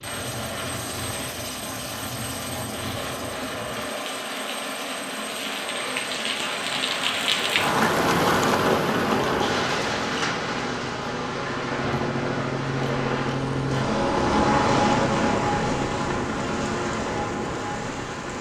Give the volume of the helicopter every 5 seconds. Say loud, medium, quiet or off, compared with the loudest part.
medium, medium, loud, loud.